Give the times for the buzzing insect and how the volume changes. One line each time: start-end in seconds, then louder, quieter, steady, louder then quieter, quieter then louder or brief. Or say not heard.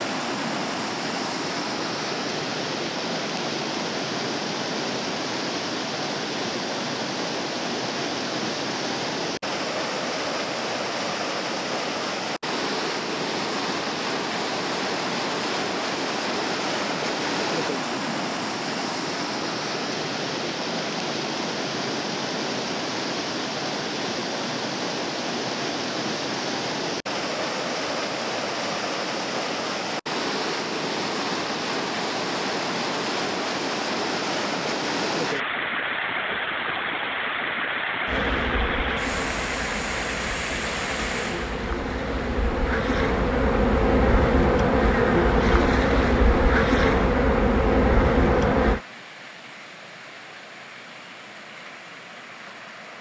38.0-48.8 louder.